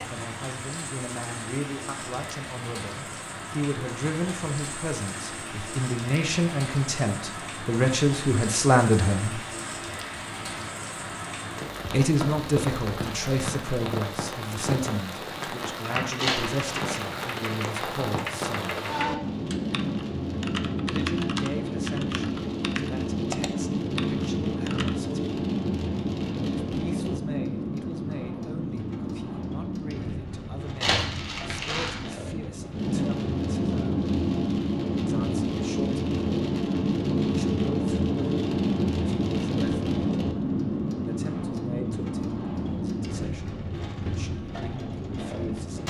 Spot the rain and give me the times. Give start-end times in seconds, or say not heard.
0.0-45.8.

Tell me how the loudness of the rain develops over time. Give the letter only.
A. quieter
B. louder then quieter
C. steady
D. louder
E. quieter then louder
D.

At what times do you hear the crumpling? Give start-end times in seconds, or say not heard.
16.1-16.8, 30.8-32.1.